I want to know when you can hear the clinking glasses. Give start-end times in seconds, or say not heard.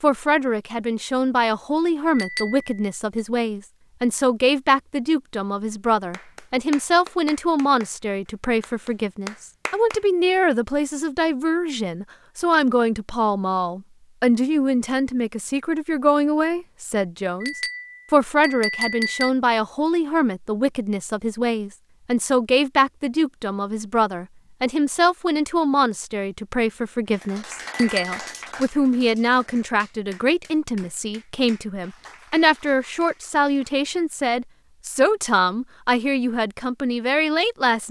2.1-3.2, 17.4-19.3, 27.7-28.2.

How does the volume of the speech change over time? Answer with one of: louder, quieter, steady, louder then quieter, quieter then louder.
steady.